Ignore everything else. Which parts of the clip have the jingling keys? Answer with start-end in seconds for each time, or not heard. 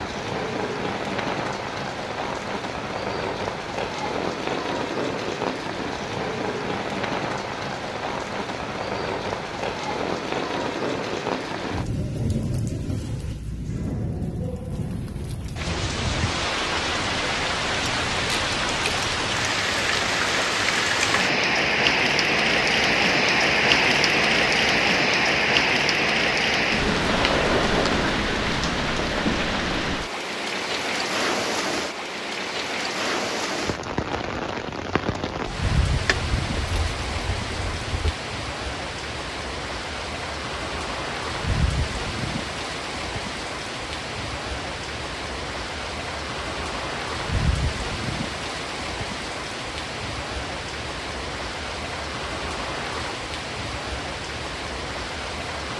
17.9-19.5, 35.9-38.1.